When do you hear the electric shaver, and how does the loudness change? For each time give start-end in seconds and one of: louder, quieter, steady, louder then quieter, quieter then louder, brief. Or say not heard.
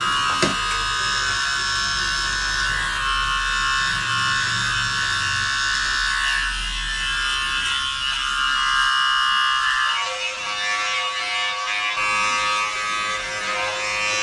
0.0-14.1 steady.